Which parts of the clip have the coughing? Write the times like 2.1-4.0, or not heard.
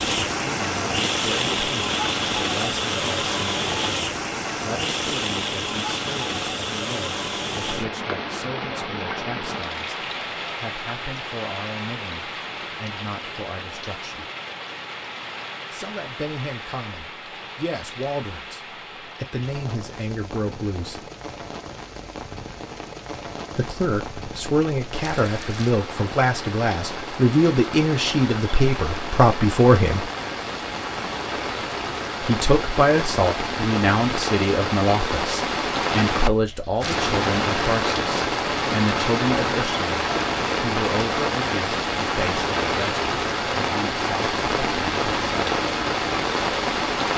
not heard.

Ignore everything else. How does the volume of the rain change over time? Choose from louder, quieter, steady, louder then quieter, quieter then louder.
quieter then louder.